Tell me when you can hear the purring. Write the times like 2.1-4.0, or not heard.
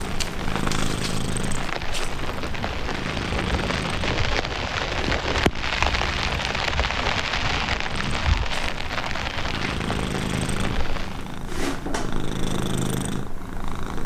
0.0-14.0.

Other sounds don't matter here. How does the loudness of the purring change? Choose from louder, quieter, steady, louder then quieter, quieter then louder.
quieter then louder.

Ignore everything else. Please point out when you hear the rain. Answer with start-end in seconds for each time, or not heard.
0.0-11.4.